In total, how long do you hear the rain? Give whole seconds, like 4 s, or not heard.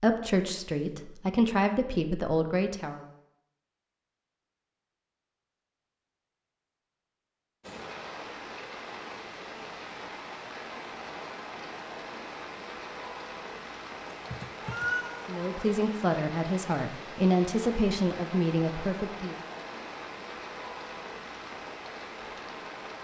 15 s.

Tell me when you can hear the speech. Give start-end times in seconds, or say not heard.
0.0-3.0, 15.2-19.4.